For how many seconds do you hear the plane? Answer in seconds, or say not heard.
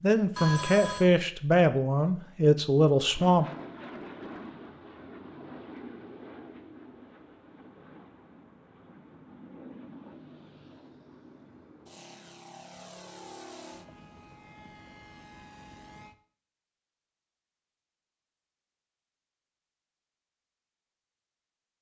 13 s.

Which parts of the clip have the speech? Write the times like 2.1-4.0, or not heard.
0.0-3.5.